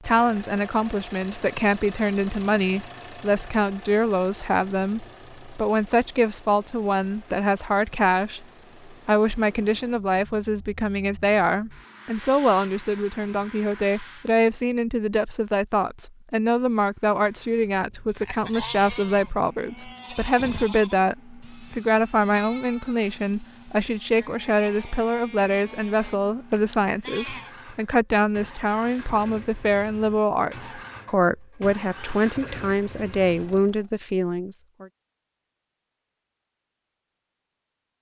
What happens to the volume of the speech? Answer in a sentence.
The volume of the speech stays about the same.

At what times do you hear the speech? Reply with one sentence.
You can hear the speech from 0.1 to 34.9 s.